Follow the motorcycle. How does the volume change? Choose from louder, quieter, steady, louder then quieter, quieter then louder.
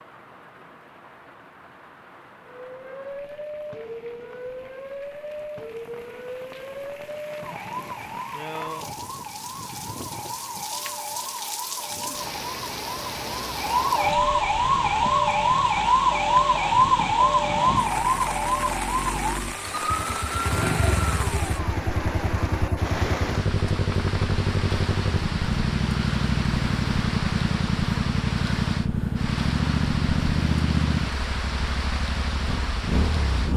louder.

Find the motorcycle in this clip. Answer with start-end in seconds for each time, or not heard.
14.8-33.5.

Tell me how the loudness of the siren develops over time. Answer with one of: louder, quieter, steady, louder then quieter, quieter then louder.
louder.